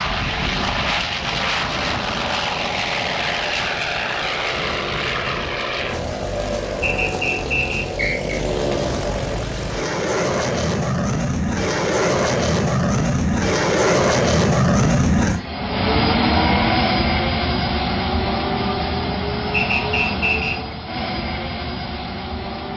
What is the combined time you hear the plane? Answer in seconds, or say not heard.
23 s.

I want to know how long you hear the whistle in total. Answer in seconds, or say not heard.
3 s.